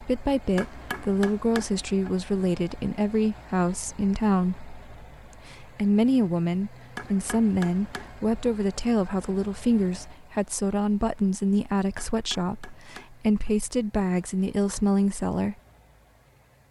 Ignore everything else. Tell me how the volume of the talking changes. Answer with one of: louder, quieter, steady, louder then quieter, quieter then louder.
steady.